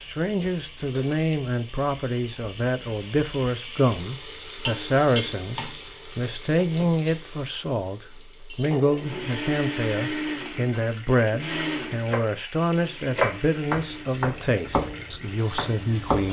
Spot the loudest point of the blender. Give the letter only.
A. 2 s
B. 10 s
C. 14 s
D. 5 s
B.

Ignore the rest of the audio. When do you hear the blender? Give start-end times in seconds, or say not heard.
8.9-16.2.